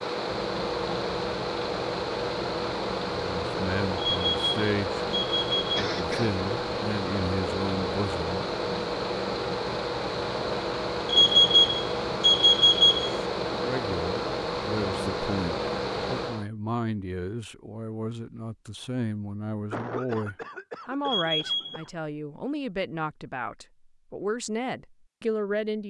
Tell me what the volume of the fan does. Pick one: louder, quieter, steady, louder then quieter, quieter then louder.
steady.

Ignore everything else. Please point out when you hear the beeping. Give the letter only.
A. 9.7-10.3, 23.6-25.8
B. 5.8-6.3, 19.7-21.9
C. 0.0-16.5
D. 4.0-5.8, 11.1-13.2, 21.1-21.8
D.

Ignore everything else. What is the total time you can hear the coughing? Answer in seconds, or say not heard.
3 s.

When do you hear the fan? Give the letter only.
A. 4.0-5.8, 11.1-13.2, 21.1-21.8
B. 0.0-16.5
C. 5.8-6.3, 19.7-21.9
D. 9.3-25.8
B.